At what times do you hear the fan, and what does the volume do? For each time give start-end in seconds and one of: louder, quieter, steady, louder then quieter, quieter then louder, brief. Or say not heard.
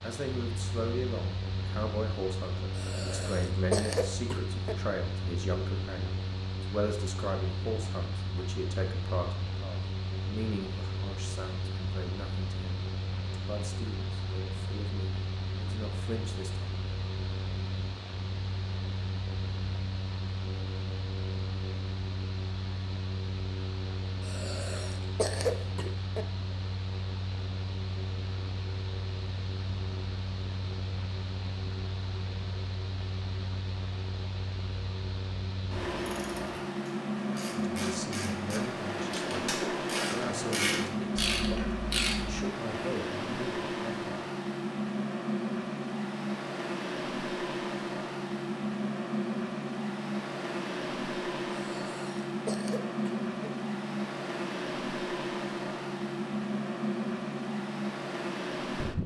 0.0-59.0 louder.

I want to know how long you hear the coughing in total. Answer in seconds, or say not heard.
6 s.